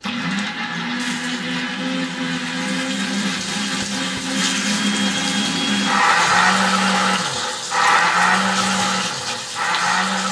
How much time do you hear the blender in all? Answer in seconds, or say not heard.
10 s.